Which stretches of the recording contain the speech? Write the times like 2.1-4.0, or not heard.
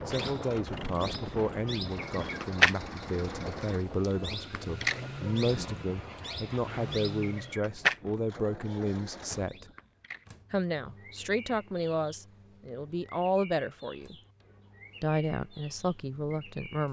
0.1-9.7, 10.5-14.2, 15.0-16.8.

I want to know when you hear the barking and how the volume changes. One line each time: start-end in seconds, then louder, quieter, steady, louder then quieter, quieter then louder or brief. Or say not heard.
not heard.